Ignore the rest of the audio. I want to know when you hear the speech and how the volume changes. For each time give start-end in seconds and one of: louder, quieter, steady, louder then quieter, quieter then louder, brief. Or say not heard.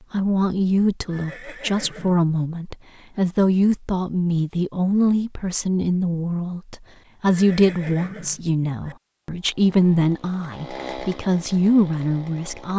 0.1-12.7 steady.